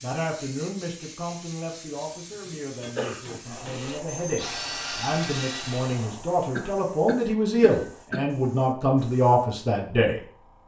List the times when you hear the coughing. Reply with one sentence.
You can hear the coughing from 2.5 to 3.2 s and from 6.5 to 8.3 s.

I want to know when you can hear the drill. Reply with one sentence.
You can hear the drill from 3.5 to 6.1 s.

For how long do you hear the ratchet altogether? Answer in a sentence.
The ratchet can't be heard in this clip.